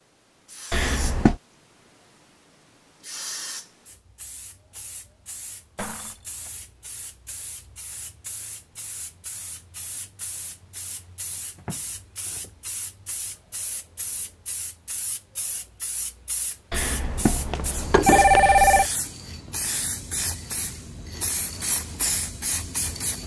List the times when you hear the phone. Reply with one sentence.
You can hear the phone from 0.7 to 1.4 s and from 16.7 to 18.9 s.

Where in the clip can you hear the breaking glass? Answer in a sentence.
The breaking glass can be heard from 5.8 to 6.5 s.